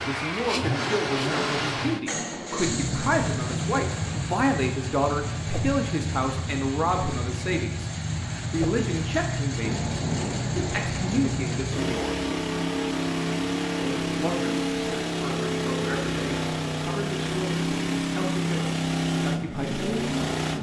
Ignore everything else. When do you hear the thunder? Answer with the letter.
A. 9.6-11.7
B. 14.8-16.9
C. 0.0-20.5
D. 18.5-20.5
A.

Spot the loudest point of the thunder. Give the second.
10 s.